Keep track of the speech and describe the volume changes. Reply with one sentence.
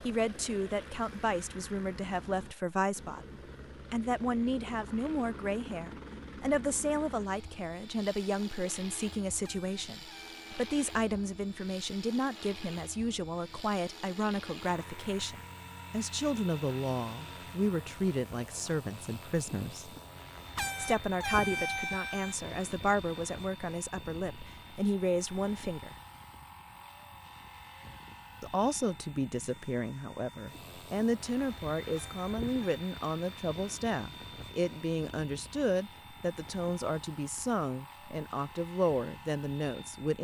The loudness of the speech stays about the same.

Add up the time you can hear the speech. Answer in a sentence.
The speech can be heard for 37 seconds in total.